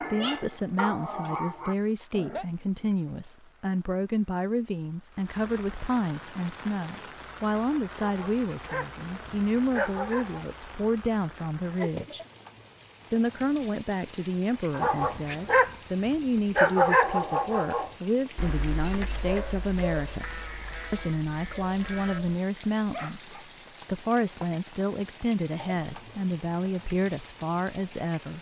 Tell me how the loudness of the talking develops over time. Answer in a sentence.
The volume of the talking stays about the same.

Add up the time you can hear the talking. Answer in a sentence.
The talking can be heard for 27 seconds in total.